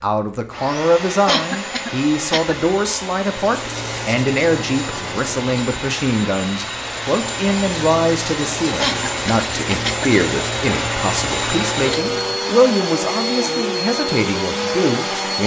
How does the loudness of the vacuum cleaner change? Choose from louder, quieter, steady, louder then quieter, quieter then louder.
louder.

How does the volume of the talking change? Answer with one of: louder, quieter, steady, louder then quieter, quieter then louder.
steady.